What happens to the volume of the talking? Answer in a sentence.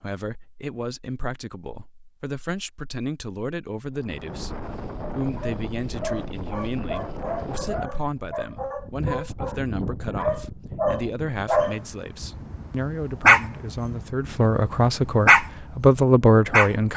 The volume of the talking goes up.